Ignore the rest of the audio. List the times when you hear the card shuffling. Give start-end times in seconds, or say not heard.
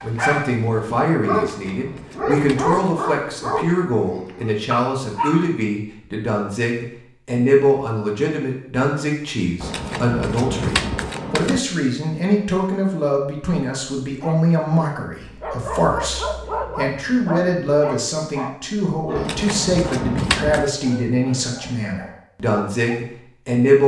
1.5-2.8, 9.6-11.6, 19.1-20.7.